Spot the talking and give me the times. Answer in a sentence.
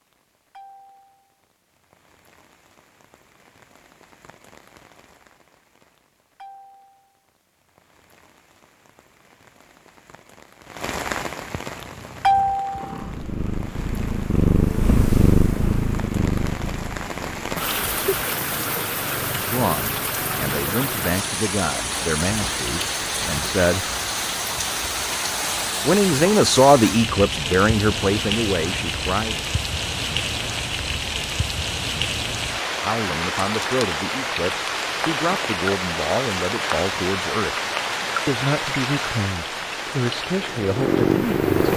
The talking can be heard from 19.4 to 23.9 s, from 25.9 to 29.4 s, from 32.7 to 37.6 s and from 38.2 to 41.7 s.